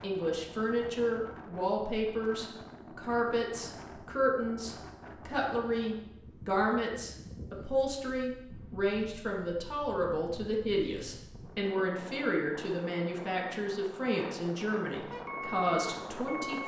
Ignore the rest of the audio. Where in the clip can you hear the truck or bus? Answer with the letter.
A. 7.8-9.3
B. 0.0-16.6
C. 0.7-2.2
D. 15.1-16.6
D.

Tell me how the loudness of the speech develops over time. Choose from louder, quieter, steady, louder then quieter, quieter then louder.
steady.